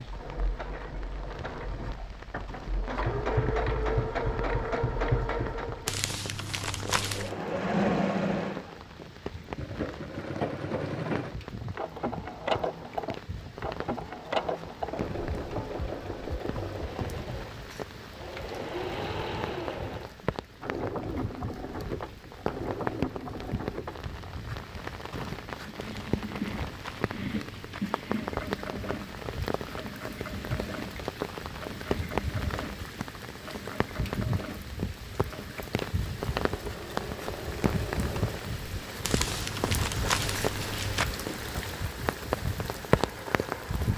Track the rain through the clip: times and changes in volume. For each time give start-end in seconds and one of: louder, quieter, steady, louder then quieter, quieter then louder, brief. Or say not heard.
0.0-43.9 louder.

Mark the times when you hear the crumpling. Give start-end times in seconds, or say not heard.
5.8-7.3, 25.8-27.8, 39.0-41.0.